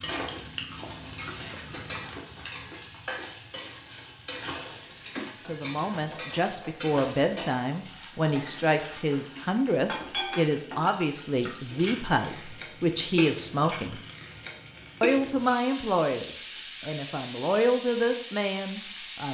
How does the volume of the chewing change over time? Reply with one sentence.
The volume of the chewing goes down.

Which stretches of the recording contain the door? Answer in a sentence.
You can hear the door from 4.3 to 5.3 s.